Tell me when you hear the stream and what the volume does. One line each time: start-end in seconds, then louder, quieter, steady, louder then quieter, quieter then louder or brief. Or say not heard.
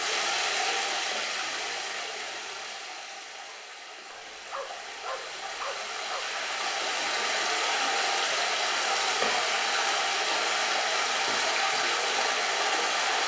0.0-13.2 quieter then louder.